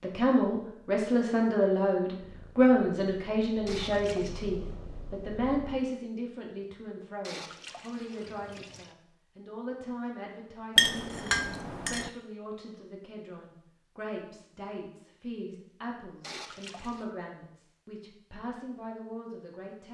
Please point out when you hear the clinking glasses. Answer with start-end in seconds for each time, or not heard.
10.8-12.1.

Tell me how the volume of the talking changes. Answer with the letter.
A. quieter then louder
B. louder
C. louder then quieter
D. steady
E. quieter
E.